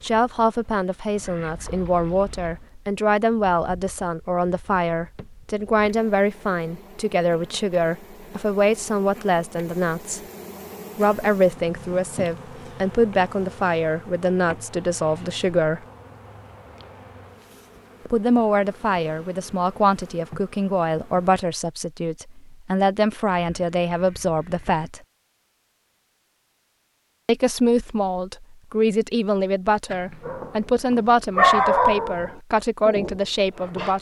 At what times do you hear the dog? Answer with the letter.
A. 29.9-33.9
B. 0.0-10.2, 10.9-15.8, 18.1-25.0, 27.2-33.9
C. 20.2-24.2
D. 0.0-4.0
A.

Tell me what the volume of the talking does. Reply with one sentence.
The volume of the talking stays about the same.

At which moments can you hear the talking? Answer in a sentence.
The talking can be heard from 0.0 to 10.2 s, from 10.9 to 15.8 s, from 18.1 to 25.0 s and from 27.2 to 33.9 s.